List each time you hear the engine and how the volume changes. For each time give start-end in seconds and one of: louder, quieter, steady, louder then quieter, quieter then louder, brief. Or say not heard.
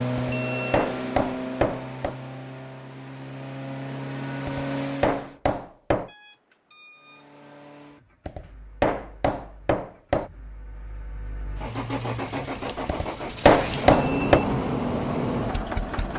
0.0-5.3 quieter then louder
7.0-16.1 quieter then louder.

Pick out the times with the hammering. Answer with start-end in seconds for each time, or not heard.
0.1-2.1, 4.5-6.1, 8.2-10.3, 12.8-14.4.